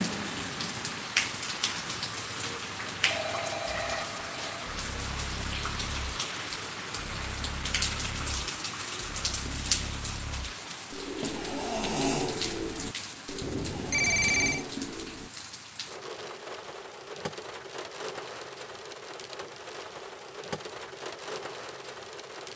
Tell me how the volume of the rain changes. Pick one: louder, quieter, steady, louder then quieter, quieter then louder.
quieter.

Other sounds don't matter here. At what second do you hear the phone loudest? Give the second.
14 s.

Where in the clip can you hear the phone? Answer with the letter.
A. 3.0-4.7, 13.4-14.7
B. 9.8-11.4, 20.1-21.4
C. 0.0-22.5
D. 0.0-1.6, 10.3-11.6
A.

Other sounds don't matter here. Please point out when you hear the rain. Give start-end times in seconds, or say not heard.
0.0-22.5.